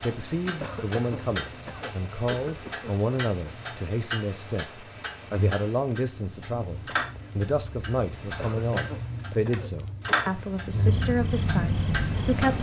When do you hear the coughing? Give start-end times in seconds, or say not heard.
0.6-3.0, 8.3-10.3.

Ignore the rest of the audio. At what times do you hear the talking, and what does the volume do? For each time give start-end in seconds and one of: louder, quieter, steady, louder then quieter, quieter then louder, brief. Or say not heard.
0.0-12.5 steady.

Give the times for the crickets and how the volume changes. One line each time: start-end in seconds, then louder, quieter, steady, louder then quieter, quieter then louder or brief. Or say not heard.
0.0-12.5 louder.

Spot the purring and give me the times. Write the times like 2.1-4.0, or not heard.
10.6-12.5.